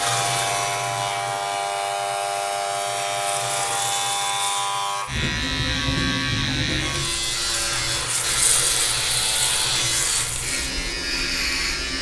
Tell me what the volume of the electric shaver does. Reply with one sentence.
The volume of the electric shaver stays about the same.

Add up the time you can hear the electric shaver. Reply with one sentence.
You can hear the electric shaver for 12 seconds altogether.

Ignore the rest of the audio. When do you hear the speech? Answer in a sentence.
The speech can't be heard in this clip.